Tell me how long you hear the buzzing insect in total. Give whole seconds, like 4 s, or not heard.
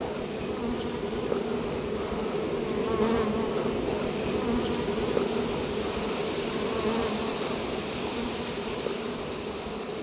10 s.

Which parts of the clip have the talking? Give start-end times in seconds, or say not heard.
not heard.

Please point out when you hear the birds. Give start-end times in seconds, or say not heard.
not heard.